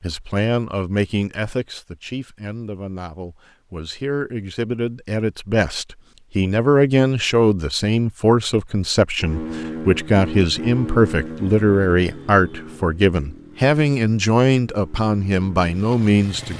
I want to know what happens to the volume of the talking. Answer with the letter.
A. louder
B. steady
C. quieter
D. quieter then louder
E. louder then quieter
A.